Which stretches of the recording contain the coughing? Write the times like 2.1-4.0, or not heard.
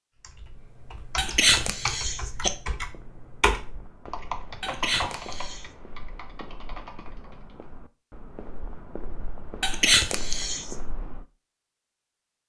1.1-2.5, 4.6-5.7, 9.6-10.8.